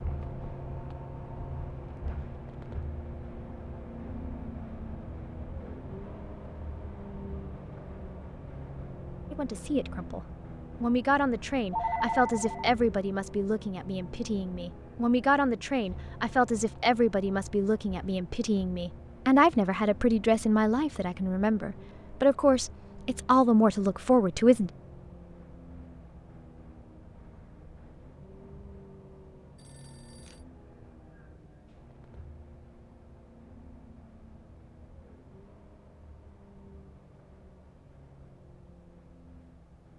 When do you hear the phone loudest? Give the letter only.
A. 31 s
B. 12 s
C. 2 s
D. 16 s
B.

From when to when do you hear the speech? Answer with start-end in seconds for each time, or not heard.
9.3-24.7.